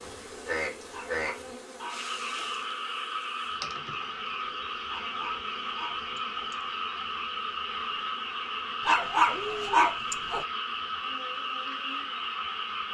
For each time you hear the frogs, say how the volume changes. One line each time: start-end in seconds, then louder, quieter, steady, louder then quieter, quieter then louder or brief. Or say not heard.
0.0-12.9 steady.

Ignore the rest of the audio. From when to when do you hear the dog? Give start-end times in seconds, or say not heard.
0.9-2.6, 4.9-6.7, 8.8-10.4.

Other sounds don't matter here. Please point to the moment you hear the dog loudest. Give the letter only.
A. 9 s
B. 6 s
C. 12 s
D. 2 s
A.